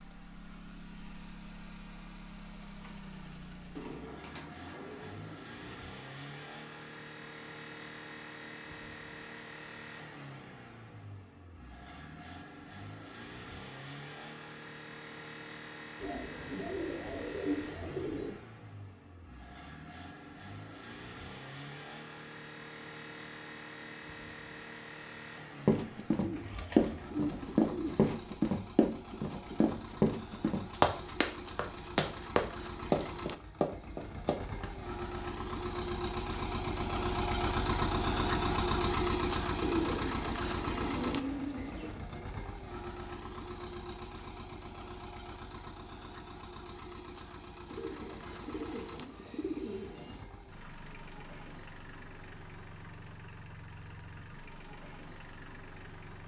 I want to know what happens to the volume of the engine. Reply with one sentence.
The volume of the engine goes up, then down.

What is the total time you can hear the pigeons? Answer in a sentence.
The pigeons can be heard for 11 seconds in total.